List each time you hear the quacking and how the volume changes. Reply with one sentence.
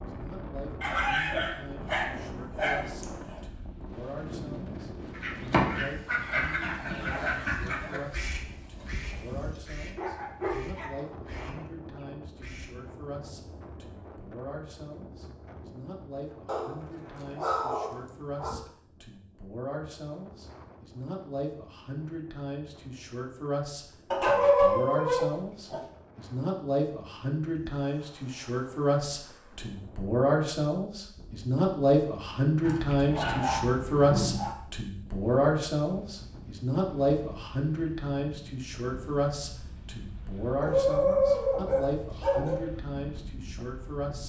The quacking can be heard from 5.1 to 12.9 s, getting quieter.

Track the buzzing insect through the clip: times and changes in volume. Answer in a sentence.
You can't hear the buzzing insect here.